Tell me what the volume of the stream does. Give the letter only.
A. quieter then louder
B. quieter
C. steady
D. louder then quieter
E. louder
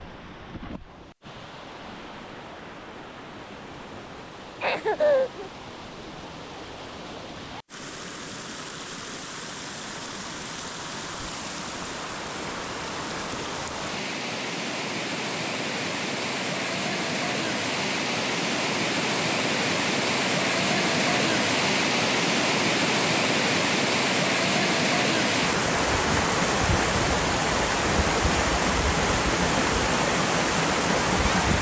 E.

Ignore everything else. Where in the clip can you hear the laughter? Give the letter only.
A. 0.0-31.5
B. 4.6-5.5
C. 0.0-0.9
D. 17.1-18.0
B.